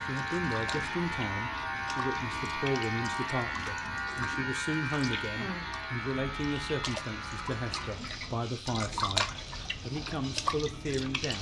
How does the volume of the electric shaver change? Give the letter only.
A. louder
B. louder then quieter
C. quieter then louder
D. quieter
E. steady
D.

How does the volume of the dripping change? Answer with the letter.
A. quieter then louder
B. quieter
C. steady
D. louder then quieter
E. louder
E.